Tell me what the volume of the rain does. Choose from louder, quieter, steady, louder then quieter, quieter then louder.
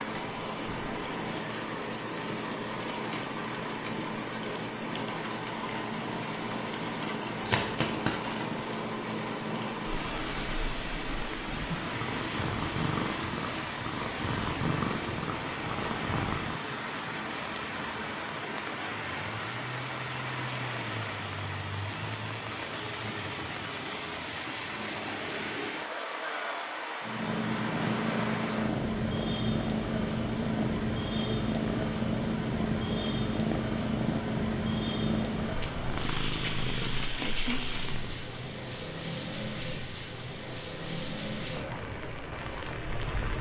steady.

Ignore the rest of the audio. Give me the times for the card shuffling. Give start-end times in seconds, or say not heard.
7.4-8.3.